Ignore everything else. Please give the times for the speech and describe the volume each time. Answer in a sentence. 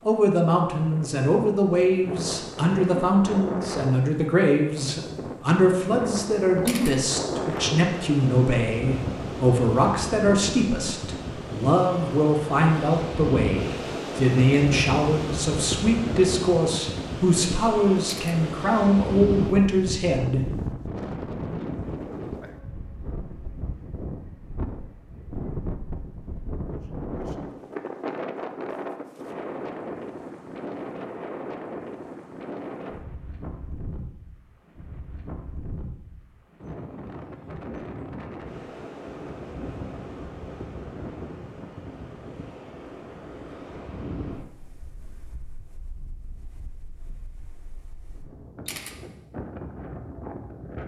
You can hear the speech from 0.1 to 20.4 s, at a steady volume.